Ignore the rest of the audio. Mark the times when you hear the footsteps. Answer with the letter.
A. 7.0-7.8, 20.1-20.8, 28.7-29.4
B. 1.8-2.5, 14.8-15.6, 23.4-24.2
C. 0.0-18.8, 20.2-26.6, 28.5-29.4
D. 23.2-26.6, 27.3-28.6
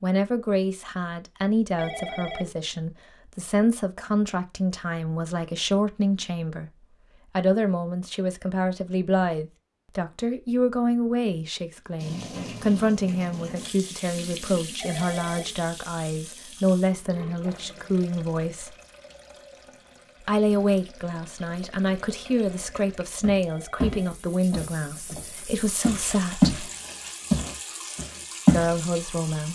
D.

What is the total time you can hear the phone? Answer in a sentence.
You can hear the phone for 2 seconds altogether.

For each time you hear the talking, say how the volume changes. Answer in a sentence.
You can hear the talking from 0.0 to 18.8 s, at a steady volume; from 20.2 to 26.6 s, at a steady volume; and briefly from 28.5 to 29.4 s.